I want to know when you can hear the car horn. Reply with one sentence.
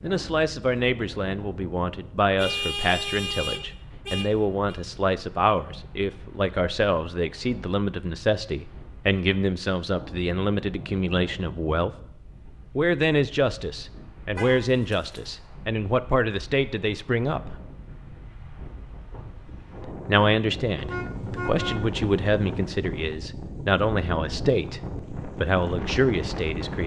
You can hear the car horn from 2.4 to 4.8 s, from 14.3 to 15.3 s and from 20.8 to 22.8 s.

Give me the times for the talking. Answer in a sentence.
You can hear the talking from 0.0 to 11.9 s, from 12.8 to 17.6 s and from 20.0 to 26.8 s.